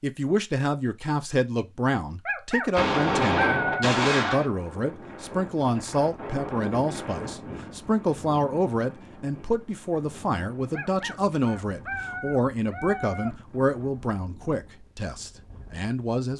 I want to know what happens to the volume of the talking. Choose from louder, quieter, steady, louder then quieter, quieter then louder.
steady.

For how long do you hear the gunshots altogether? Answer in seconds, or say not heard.
2 s.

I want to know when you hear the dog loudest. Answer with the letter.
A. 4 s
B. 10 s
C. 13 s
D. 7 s
A.